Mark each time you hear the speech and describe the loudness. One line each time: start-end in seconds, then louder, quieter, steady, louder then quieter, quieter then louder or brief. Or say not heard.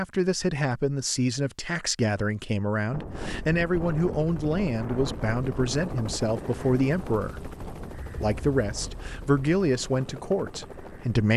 0.0-11.3 steady.